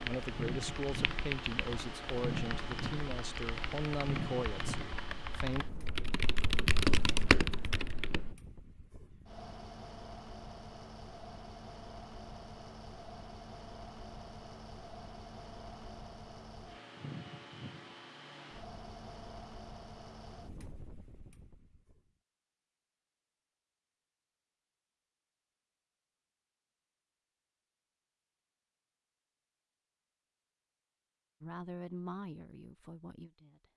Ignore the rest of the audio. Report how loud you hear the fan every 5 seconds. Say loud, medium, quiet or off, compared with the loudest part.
loud, medium, medium, medium, quiet, off, off.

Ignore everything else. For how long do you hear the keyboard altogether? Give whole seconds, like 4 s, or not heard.
8 s.